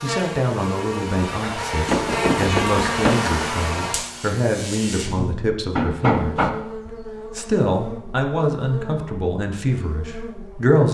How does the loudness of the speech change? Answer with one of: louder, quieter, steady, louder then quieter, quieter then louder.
steady.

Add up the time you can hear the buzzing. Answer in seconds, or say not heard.
11 s.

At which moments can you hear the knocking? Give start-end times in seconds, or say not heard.
1.9-3.1, 5.8-6.6.